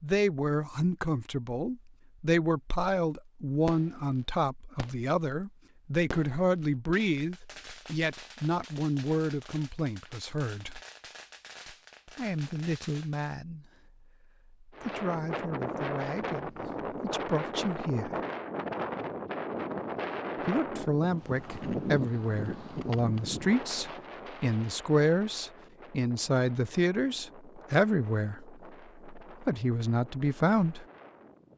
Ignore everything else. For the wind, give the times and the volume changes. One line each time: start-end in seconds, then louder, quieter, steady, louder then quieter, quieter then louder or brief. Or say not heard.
14.7-31.5 quieter.